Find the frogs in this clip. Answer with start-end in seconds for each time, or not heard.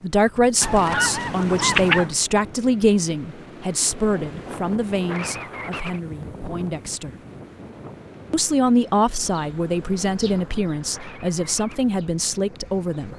not heard.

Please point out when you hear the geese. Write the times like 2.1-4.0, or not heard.
0.6-2.1.